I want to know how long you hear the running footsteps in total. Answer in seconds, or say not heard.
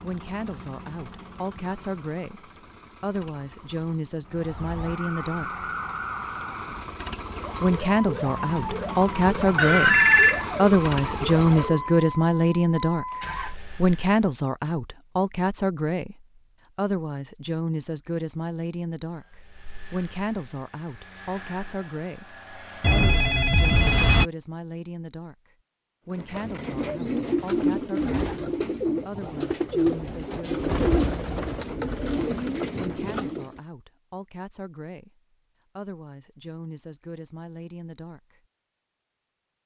not heard.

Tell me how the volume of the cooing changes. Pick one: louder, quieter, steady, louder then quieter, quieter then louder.
steady.